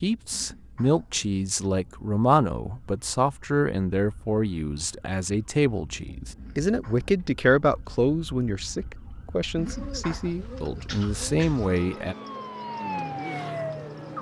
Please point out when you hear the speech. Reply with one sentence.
You can hear the speech from 0.0 to 12.2 s.